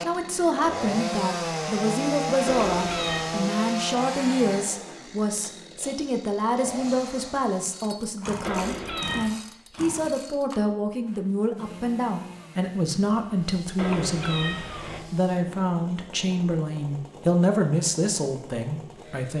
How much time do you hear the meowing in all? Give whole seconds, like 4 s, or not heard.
3 s.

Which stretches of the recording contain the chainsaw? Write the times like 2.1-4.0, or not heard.
0.0-19.3.